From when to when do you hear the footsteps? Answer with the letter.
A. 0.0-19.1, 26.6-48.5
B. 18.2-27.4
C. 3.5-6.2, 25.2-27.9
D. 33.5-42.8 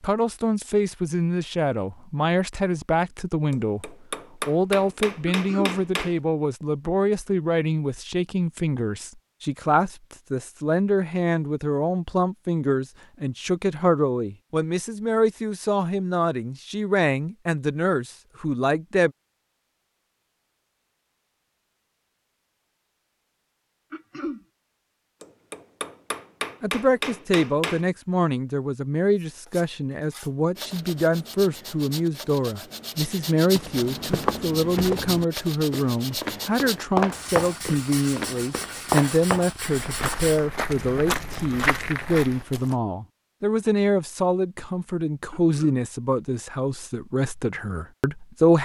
D.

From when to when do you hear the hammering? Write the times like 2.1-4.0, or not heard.
3.5-6.2, 25.2-27.9.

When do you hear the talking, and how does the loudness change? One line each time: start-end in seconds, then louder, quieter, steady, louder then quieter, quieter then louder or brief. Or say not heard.
0.0-19.1 steady
26.6-48.5 steady.